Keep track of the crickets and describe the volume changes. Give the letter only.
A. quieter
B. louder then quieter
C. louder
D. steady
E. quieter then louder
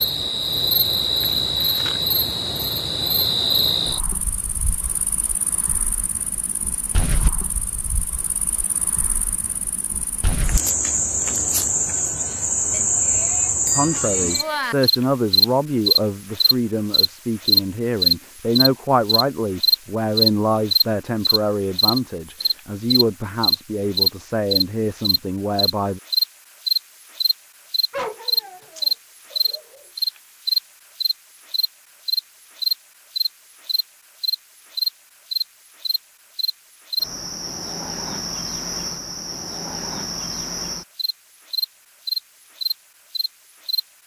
B.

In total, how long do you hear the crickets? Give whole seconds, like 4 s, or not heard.
44 s.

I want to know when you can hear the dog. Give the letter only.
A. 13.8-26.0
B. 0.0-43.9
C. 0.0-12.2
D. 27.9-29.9
D.